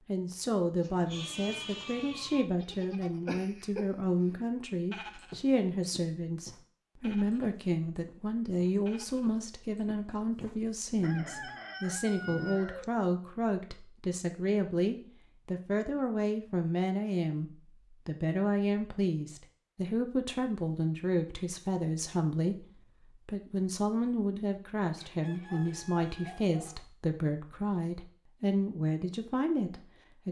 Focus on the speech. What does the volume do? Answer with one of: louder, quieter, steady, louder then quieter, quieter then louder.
steady.